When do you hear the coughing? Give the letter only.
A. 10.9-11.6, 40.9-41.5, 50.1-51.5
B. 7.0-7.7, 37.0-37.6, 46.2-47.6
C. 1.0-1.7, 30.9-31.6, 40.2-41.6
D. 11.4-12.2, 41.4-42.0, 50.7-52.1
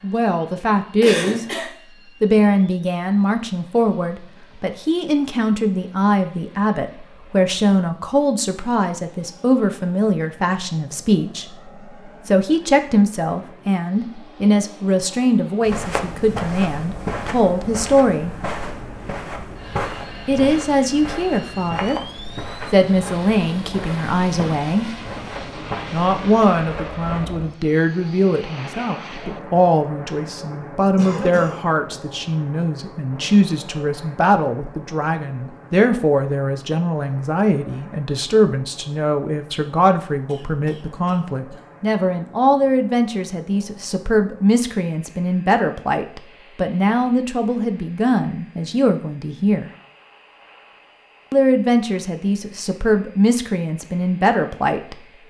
C.